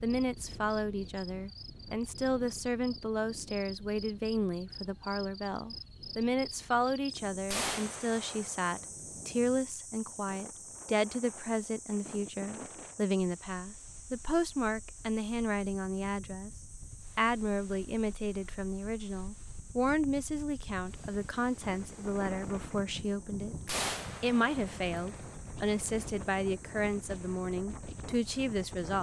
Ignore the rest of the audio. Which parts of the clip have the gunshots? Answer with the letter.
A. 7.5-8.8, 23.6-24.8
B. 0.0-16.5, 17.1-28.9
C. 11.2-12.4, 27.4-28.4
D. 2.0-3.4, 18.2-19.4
A.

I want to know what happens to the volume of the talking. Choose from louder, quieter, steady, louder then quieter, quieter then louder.
steady.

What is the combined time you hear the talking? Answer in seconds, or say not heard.
28 s.